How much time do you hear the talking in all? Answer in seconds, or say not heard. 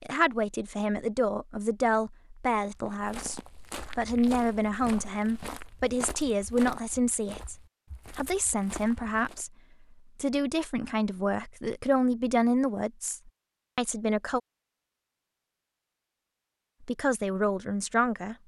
15 s.